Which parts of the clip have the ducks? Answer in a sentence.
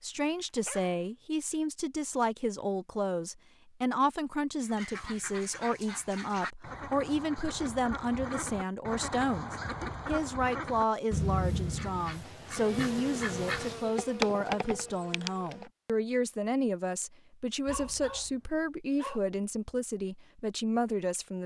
The ducks can be heard from 4.6 to 13.9 s.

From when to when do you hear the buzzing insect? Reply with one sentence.
You can hear the buzzing insect from 12.6 to 15.7 s.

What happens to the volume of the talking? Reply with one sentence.
The volume of the talking stays about the same.